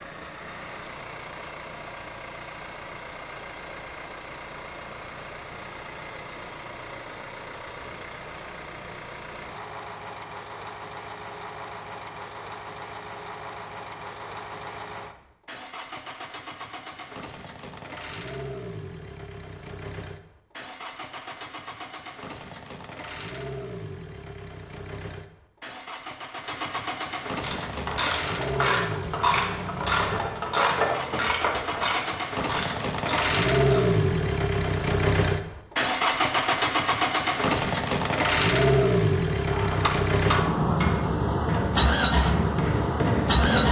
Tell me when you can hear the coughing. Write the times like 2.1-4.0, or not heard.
not heard.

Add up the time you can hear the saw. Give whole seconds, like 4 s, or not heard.
not heard.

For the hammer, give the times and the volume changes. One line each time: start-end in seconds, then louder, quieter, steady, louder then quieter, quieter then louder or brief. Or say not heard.
39.5-43.6 quieter then louder.